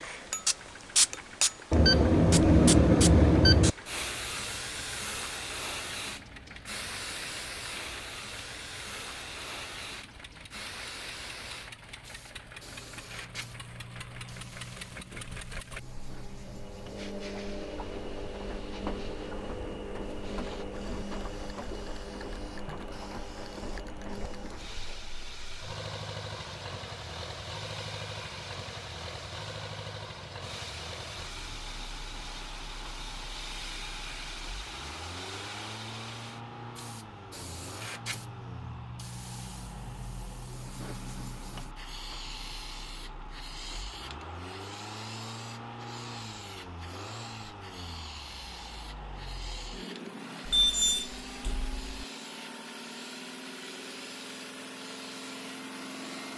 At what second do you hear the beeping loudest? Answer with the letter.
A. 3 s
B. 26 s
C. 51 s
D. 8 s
A.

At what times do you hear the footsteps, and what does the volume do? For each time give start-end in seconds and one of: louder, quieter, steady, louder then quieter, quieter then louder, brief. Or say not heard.
not heard.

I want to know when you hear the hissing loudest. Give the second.
1 s.